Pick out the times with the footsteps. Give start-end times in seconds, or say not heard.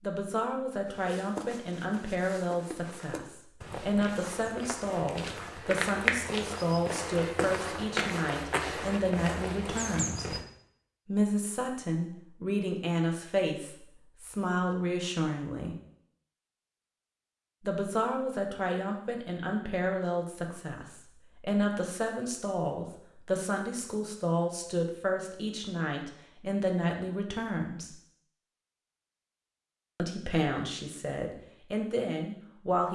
0.8-10.4.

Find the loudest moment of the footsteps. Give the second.
6 s.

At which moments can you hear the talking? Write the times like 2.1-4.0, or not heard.
0.0-10.3, 11.1-15.8, 17.6-27.9, 29.9-32.9.